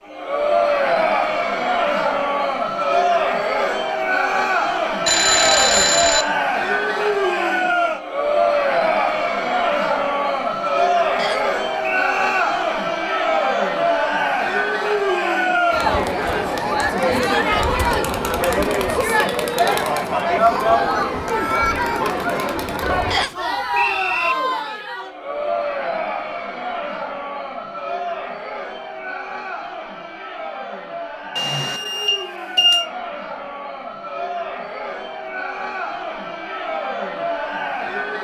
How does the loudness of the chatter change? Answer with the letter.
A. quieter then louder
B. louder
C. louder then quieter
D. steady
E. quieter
E.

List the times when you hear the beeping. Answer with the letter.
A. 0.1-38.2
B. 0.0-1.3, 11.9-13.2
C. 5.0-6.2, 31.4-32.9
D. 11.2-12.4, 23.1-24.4
C.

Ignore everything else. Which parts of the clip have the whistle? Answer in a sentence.
You can hear the whistle from 11.2 to 12.4 s and from 23.1 to 24.4 s.